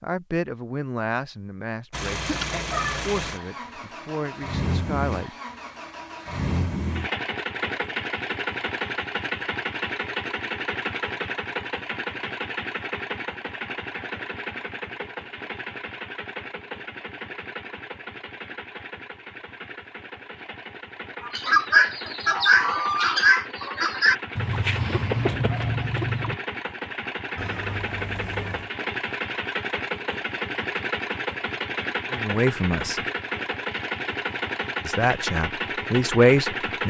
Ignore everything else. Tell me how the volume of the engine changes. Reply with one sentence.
The volume of the engine goes down, then up.